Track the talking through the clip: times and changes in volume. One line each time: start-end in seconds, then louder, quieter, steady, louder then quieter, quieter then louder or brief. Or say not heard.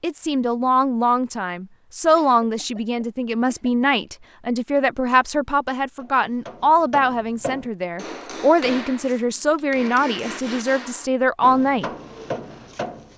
0.0-11.8 steady.